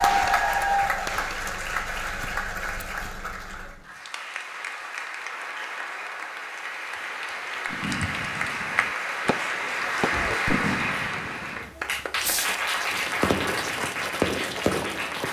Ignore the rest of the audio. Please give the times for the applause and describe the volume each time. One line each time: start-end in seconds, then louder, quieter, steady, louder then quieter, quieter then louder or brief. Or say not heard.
0.0-15.2 quieter then louder.